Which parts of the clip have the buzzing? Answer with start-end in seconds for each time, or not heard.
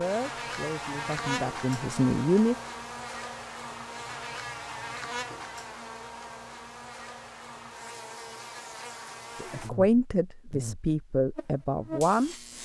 0.0-12.6.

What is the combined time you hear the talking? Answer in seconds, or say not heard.
6 s.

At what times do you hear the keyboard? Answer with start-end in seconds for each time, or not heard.
not heard.